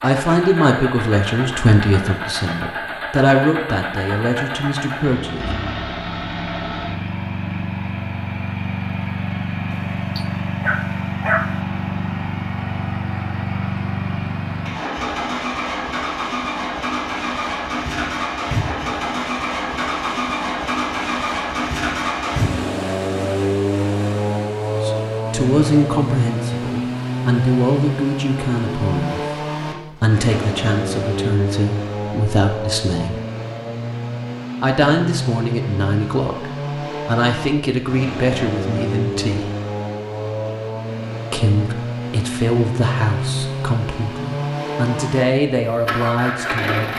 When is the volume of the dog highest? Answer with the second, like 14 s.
11 s.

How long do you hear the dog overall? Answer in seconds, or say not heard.
2 s.